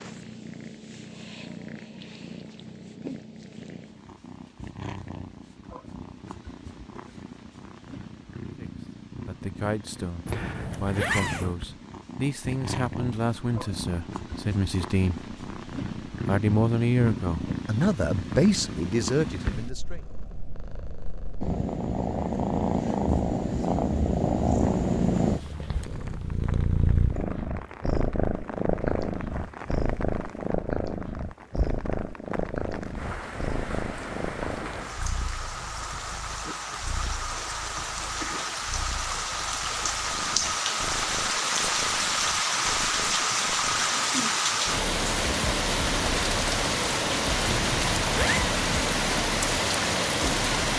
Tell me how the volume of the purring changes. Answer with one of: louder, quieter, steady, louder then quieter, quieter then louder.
louder then quieter.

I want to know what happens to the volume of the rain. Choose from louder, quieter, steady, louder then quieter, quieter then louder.
louder.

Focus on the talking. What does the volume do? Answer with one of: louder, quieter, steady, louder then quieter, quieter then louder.
louder.